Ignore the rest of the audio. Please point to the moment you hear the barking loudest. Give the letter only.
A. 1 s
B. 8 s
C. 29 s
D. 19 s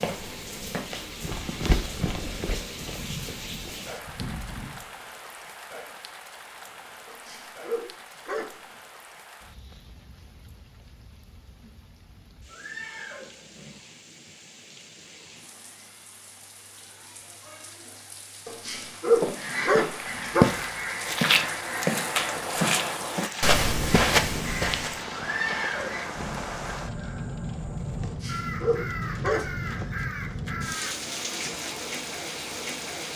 D.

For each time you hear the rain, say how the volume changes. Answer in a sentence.
The rain can be heard from 0.0 to 33.1 s, getting quieter then louder.